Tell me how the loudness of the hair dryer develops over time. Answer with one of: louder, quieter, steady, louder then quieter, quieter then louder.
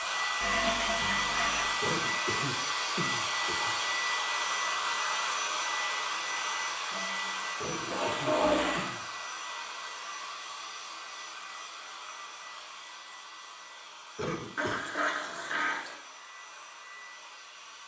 quieter.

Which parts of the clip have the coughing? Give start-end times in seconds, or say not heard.
1.8-3.8, 7.5-9.1, 14.2-14.8.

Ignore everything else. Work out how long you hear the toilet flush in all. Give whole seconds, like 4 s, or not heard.
5 s.